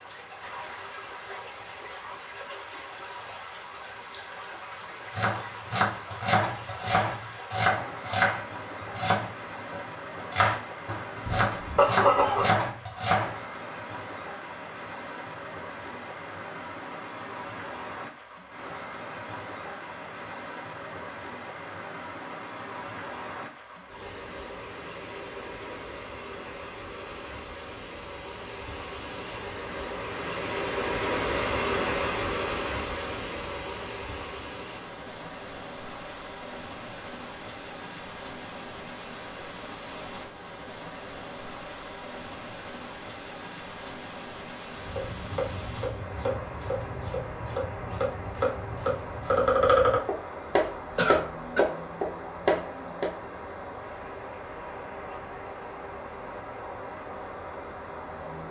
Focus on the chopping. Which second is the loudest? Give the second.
50 s.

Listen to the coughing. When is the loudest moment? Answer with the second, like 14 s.
12 s.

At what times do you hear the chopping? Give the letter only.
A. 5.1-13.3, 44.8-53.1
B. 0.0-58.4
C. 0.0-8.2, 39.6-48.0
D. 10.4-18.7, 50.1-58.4
A.